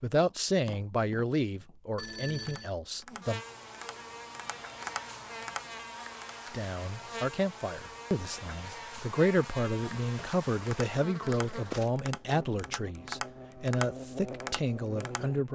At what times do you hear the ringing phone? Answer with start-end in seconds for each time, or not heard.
1.9-2.7.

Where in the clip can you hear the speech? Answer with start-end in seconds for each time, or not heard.
0.0-3.4, 6.5-15.5.